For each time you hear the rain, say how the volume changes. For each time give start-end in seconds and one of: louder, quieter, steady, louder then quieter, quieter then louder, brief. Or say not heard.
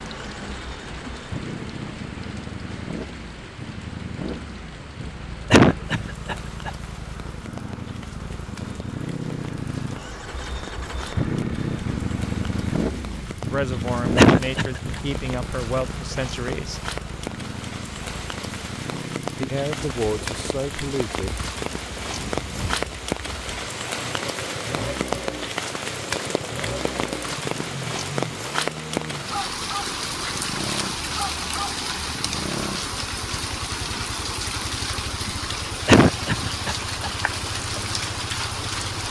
0.0-39.0 louder.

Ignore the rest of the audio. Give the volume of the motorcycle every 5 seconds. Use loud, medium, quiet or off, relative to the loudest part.
medium, medium, loud, medium, medium, medium, medium, medium.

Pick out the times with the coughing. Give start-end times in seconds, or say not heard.
5.5-6.7, 14.2-15.0, 35.9-37.1.